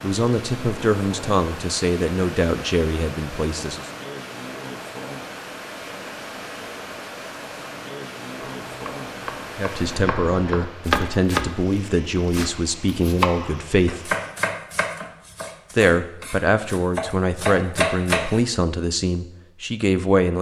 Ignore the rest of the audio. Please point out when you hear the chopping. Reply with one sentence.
You can hear the chopping from 8.6 to 18.4 s.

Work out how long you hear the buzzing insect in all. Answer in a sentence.
The buzzing insect can't be heard in this clip.